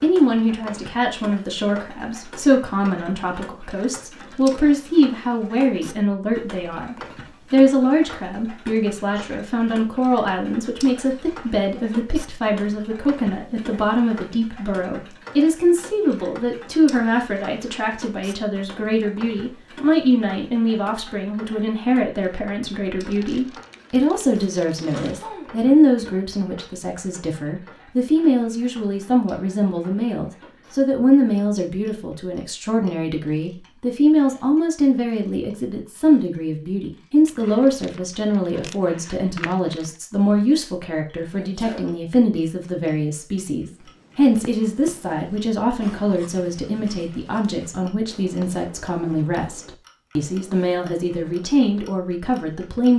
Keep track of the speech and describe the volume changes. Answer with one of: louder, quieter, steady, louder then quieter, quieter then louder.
steady.